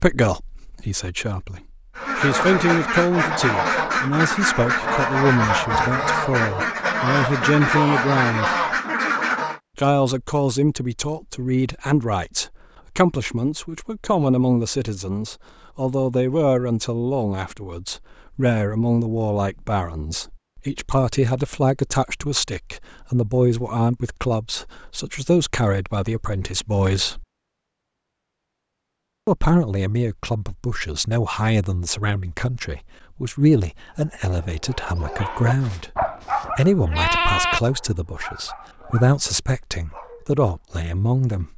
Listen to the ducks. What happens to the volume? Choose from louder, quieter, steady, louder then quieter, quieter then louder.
steady.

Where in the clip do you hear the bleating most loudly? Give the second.
37 s.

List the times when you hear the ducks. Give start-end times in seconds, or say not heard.
1.9-9.6.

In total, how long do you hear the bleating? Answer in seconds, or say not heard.
2 s.